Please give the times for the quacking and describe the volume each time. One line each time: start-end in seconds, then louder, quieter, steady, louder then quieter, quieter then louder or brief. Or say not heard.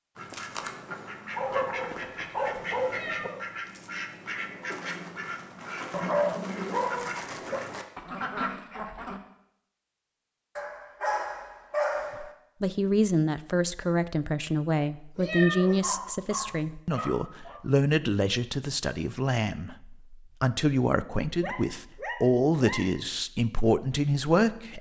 0.1-9.2 steady.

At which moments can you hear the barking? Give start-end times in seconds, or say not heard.
1.4-3.3, 5.9-7.6, 10.6-12.3, 15.8-17.6, 21.4-22.9.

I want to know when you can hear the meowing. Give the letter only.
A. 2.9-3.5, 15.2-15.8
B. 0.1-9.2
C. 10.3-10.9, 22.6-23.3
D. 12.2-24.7
A.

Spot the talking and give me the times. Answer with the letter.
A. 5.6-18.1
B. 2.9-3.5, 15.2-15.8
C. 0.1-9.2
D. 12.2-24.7
D.